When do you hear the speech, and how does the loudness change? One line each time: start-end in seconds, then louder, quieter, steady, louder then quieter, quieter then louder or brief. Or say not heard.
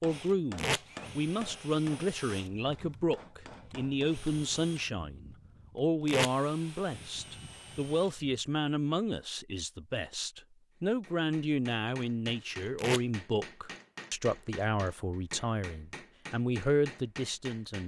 0.0-17.8 steady.